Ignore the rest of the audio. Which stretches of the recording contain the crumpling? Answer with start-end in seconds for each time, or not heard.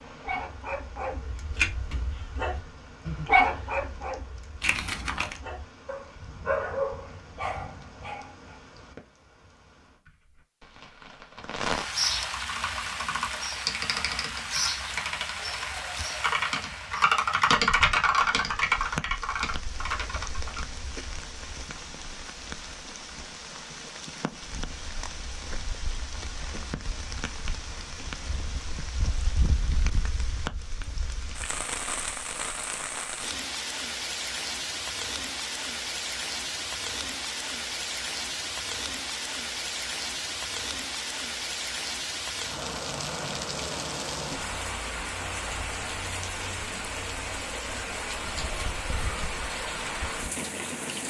4.6-5.4.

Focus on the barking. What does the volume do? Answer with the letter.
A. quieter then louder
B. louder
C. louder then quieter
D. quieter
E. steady
C.